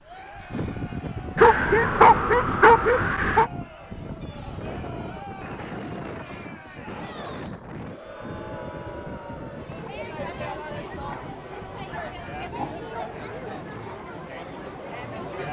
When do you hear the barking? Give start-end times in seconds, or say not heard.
1.4-3.5, 11.1-13.2.